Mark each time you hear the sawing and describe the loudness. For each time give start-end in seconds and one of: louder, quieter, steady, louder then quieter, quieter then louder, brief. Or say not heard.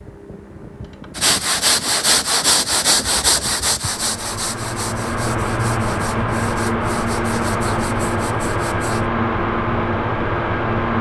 1.1-9.1 quieter.